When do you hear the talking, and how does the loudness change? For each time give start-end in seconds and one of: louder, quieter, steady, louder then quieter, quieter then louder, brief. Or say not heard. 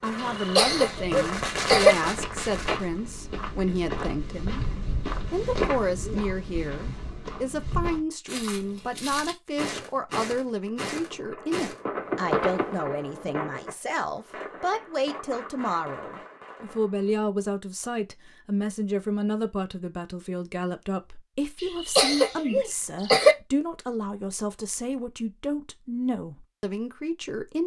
0.0-27.6 steady.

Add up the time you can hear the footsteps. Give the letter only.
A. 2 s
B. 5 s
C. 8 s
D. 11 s
D.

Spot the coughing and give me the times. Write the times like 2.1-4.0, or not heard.
0.2-1.9, 21.6-23.4.